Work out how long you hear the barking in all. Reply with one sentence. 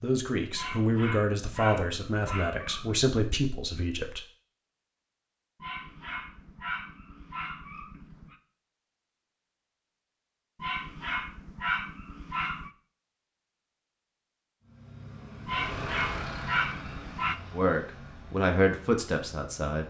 The barking can be heard for 9 seconds in total.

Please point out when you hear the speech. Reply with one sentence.
The speech can be heard from 0.0 to 4.2 s and from 17.5 to 19.8 s.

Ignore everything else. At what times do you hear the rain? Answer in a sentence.
The rain can't be heard in this clip.